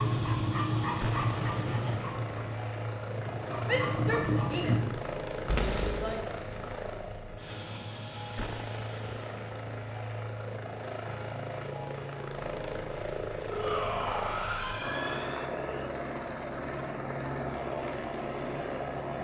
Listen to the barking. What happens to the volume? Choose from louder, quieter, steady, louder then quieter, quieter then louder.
quieter then louder.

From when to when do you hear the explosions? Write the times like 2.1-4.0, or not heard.
5.5-6.2.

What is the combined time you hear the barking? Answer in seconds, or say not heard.
5 s.